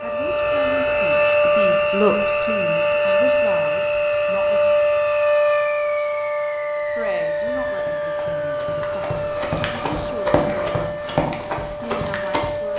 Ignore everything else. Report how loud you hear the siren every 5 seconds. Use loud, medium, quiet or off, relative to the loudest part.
loud, loud, medium.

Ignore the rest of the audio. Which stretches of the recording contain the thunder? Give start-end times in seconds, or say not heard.
not heard.